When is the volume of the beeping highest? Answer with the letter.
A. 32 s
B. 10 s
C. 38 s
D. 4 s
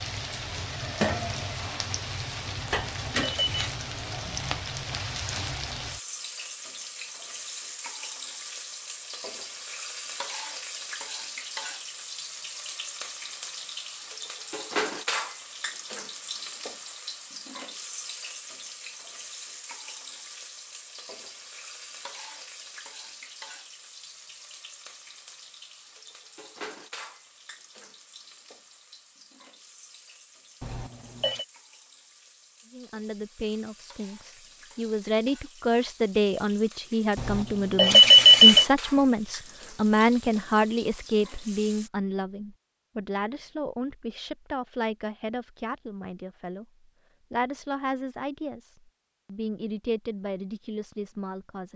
C.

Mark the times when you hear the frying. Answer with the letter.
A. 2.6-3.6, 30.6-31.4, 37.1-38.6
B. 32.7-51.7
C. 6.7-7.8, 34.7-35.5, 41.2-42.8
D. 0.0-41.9
D.